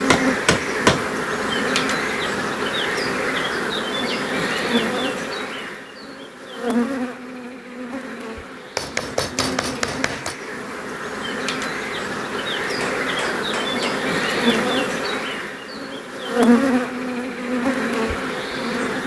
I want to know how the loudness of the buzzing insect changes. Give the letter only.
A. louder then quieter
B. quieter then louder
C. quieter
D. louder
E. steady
B.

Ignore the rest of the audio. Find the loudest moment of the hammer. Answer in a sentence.
The volume of the hammer peaks at 1 second.